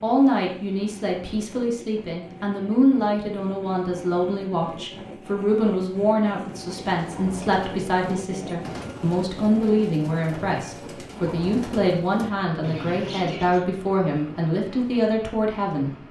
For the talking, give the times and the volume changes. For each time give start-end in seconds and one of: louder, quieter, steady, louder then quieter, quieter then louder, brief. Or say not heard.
0.0-15.9 steady.